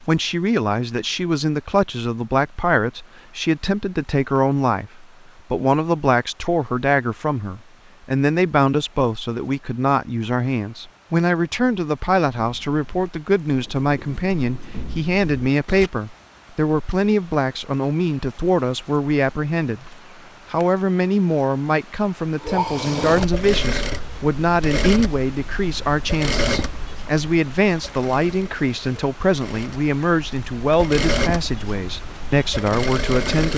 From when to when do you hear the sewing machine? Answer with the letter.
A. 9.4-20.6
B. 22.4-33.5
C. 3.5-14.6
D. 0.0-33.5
B.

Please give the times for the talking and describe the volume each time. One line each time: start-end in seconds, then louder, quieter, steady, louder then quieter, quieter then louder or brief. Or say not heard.
0.0-33.5 steady.